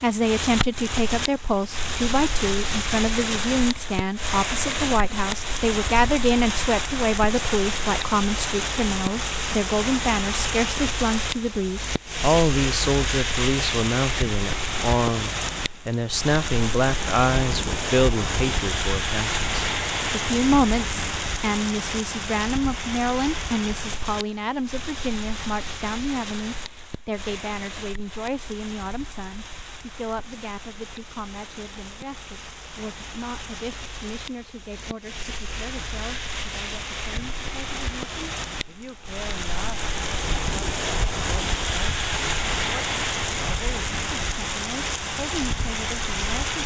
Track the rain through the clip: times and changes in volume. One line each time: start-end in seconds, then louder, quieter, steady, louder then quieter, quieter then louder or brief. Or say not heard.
0.0-46.6 quieter then louder.